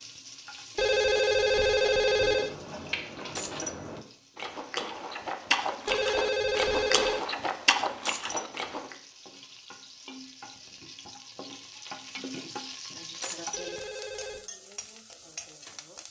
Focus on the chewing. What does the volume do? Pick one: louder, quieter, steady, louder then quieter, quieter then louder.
louder.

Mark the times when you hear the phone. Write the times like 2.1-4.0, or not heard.
0.8-2.5, 5.8-7.2, 13.5-14.4.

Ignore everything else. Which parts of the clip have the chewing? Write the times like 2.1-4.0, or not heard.
2.4-8.9.